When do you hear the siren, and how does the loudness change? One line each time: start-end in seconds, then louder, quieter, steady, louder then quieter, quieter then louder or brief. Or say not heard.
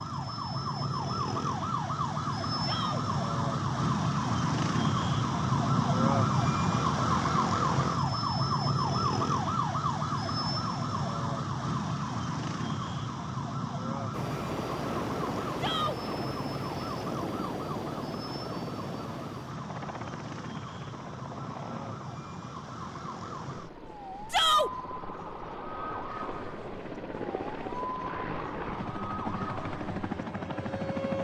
0.0-31.2 quieter.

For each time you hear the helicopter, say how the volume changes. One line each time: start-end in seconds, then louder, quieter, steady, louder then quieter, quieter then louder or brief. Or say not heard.
14.1-31.2 quieter then louder.